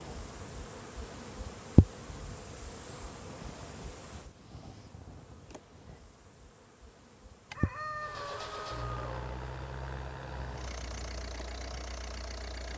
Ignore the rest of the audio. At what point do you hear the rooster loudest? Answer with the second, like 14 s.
8 s.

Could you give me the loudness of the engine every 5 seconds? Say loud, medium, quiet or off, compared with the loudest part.
off, loud, loud.